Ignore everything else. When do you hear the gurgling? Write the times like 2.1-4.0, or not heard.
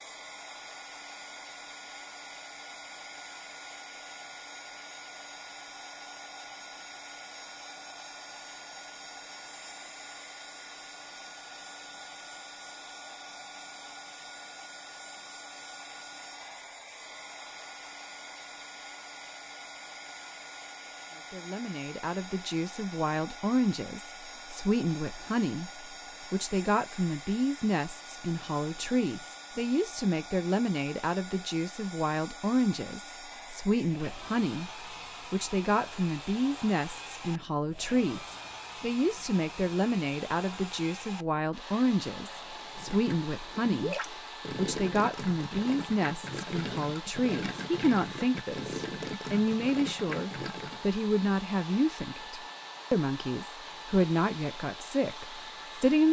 42.8-50.8.